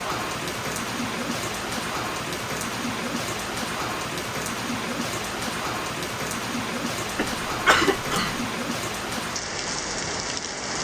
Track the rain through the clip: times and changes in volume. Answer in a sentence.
You can hear the rain from 0.0 to 10.7 s, at a steady volume.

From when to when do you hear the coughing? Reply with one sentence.
You can hear the coughing from 7.2 to 8.4 s.